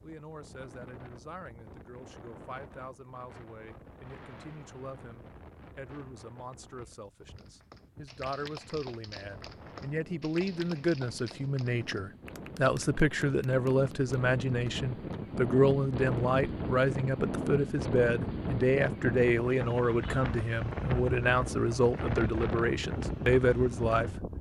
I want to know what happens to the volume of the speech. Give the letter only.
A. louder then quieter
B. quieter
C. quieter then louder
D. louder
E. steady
D.